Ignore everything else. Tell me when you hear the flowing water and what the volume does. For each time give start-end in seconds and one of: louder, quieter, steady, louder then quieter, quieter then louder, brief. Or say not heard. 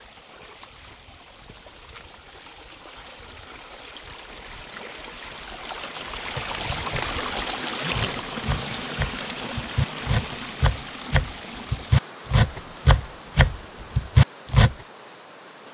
0.0-15.7 louder then quieter.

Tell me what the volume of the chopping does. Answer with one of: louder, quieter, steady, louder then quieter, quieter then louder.
louder.